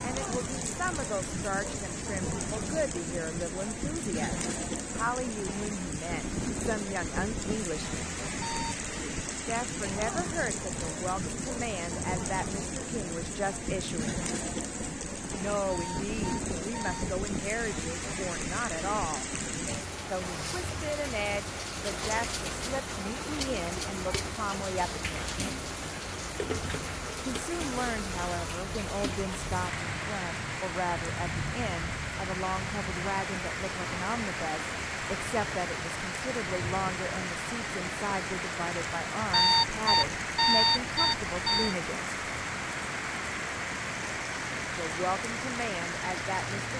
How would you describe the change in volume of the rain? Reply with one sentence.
The loudness of the rain stays about the same.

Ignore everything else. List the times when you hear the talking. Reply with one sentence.
The talking can be heard from 0.0 to 8.2 s, from 9.4 to 14.2 s, from 15.3 to 19.2 s, from 20.1 to 25.1 s, from 27.2 to 42.1 s and from 44.8 to 46.7 s.